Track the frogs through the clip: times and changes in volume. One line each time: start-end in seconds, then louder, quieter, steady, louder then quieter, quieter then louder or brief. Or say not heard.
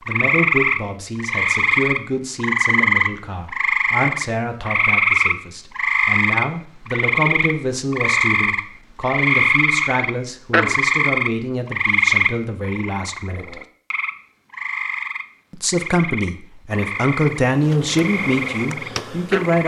0.1-19.6 quieter.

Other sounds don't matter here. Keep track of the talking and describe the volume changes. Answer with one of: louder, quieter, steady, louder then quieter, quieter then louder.
louder.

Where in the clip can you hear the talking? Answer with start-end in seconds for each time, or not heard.
0.1-13.6, 15.5-19.6.